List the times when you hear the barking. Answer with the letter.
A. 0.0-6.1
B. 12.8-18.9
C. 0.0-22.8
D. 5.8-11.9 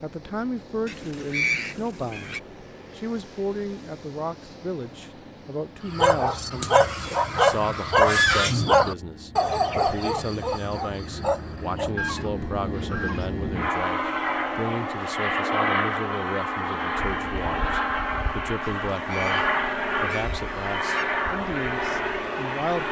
D.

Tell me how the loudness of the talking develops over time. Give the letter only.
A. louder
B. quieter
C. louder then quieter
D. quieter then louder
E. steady
E.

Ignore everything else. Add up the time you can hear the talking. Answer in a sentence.
The talking can be heard for 23 seconds in total.